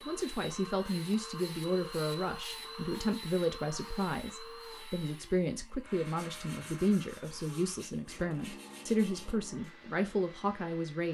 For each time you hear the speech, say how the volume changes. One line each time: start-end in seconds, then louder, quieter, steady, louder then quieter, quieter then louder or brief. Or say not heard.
0.1-11.0 steady.